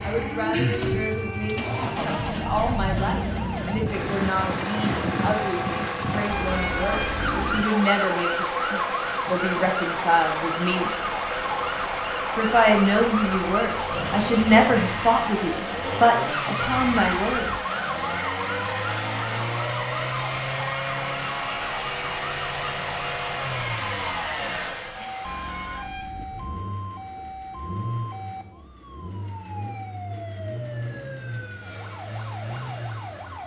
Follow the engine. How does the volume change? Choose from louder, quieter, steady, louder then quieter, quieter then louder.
quieter.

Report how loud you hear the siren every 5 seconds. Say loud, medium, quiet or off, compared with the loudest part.
loud, loud, loud, loud, medium, medium, medium.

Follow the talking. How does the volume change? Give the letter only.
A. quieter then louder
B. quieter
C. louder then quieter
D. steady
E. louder
E.